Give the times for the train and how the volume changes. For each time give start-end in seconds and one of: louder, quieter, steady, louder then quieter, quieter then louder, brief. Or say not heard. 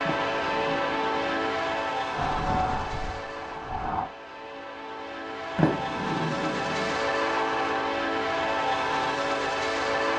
0.0-10.1 quieter then louder.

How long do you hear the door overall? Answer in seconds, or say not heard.
3 s.